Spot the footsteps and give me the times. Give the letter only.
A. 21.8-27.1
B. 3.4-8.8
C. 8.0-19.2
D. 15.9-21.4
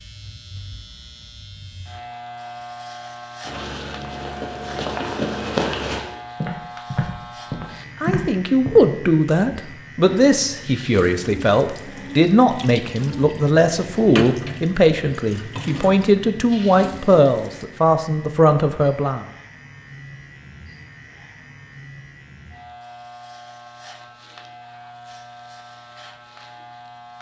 B.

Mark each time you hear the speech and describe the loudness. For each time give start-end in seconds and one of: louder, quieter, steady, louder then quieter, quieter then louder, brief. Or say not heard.
8.0-19.2 steady.